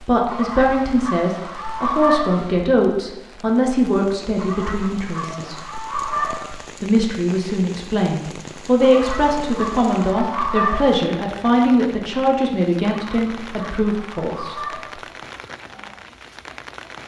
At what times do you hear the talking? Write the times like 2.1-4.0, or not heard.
0.0-5.5, 6.8-14.6.